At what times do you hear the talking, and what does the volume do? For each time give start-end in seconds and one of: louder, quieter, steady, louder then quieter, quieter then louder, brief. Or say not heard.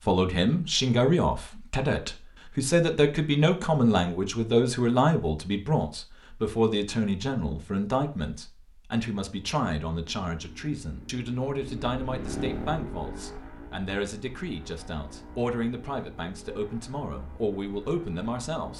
0.1-18.7 quieter.